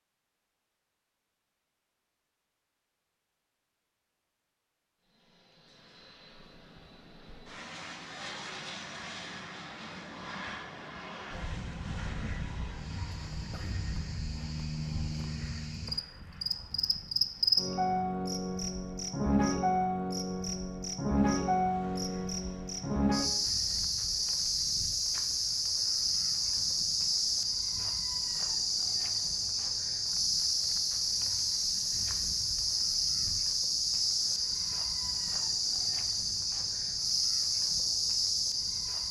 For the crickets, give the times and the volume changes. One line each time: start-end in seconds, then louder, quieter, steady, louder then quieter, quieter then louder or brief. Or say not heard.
12.7-39.0 steady.